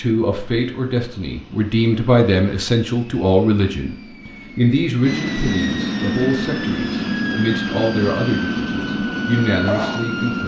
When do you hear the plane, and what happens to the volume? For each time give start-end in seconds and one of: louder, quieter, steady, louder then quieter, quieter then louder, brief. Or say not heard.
0.0-10.4 louder.